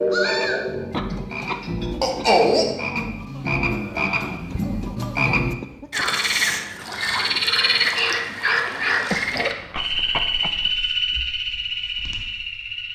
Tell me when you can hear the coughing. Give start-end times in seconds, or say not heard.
0.9-2.3, 4.3-6.1, 9.1-10.7.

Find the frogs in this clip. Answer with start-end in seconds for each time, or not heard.
0.0-12.9.